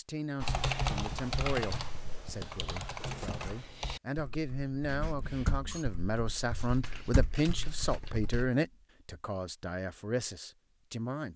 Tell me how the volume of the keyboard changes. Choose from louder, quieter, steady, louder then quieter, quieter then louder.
quieter then louder.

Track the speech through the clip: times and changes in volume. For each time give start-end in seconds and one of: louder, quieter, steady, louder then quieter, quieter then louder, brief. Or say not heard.
0.0-11.3 louder then quieter.